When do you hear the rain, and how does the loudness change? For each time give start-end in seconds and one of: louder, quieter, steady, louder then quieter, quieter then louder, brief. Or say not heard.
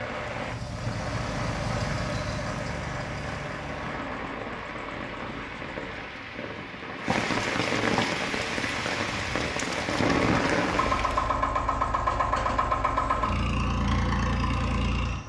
0.0-11.4 louder.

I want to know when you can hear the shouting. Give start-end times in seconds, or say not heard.
not heard.